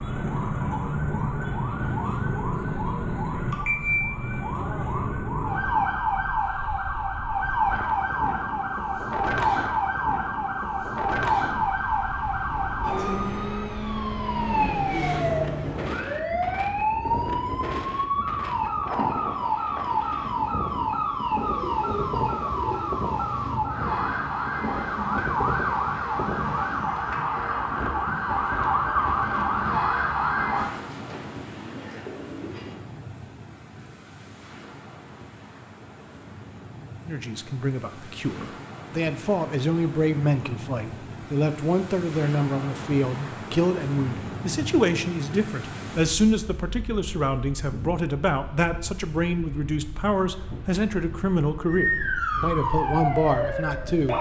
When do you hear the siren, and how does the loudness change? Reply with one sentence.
You can hear the siren from 0.0 to 30.7 s, at a steady volume; and briefly from 51.6 to 54.1 s.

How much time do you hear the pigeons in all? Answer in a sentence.
You can hear the pigeons for 3 seconds altogether.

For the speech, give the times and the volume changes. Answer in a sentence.
You can hear the speech from 37.0 to 54.1 s, at a steady volume.